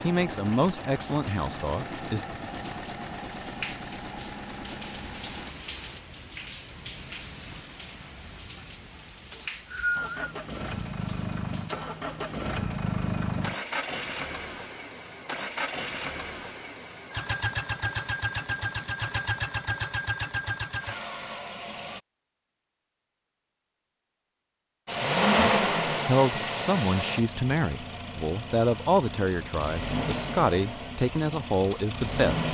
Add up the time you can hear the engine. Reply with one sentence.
You can hear the engine for 25 seconds altogether.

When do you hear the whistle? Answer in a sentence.
You can hear the whistle from 9.3 to 10.3 s.